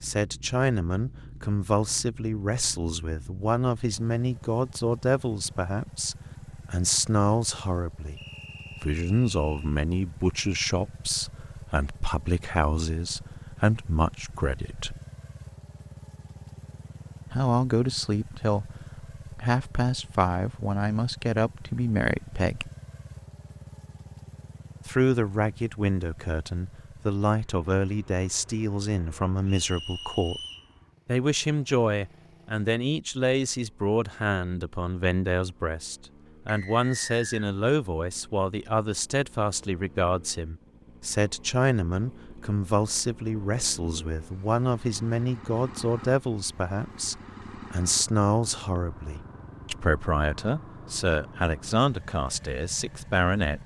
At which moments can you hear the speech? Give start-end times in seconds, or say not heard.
0.0-8.2, 8.8-15.0, 17.3-22.7, 24.9-30.4, 31.1-53.6.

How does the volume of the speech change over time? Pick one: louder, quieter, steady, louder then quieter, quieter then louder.
steady.